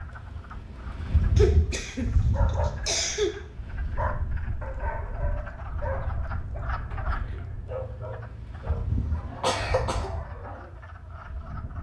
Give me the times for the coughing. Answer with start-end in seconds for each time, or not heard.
1.4-3.3, 8.9-10.1.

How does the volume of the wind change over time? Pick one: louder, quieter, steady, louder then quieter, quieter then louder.
quieter.